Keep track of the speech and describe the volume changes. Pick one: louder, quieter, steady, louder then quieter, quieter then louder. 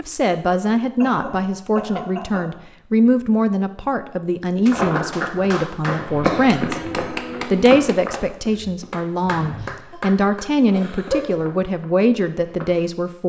steady.